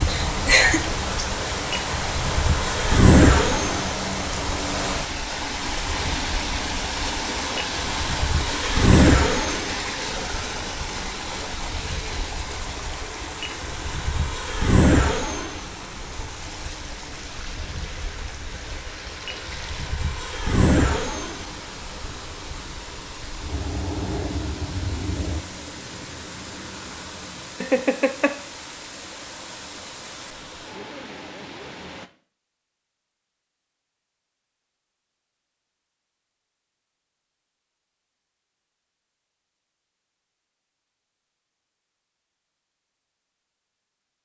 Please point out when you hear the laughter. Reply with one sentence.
The laughter can be heard from 0.1 to 0.8 s and from 27.6 to 28.4 s.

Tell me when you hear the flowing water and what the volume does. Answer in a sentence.
The flowing water can be heard from 0.0 to 32.1 s, getting quieter.